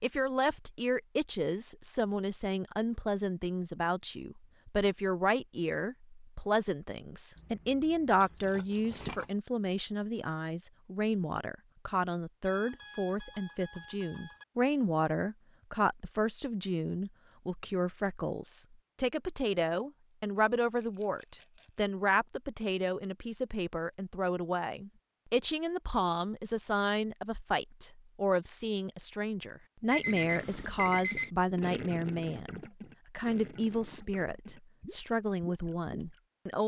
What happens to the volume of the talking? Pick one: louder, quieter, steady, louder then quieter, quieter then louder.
steady.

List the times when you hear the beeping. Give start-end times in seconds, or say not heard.
7.3-8.5, 12.4-14.4, 29.9-31.3.